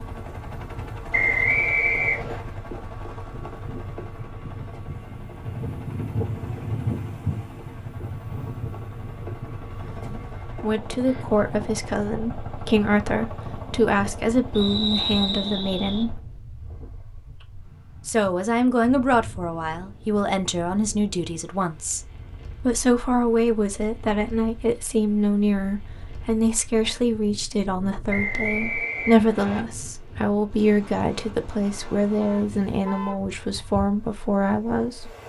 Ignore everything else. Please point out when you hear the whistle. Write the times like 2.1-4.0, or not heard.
1.1-2.4, 14.6-16.1, 28.1-29.6.